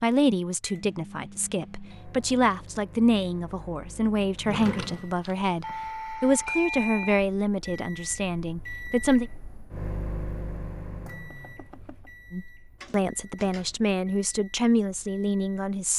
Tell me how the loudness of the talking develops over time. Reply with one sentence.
The loudness of the talking stays about the same.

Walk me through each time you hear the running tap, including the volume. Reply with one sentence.
The running tap can't be heard in this clip.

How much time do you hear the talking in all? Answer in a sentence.
The talking can be heard for 13 seconds in total.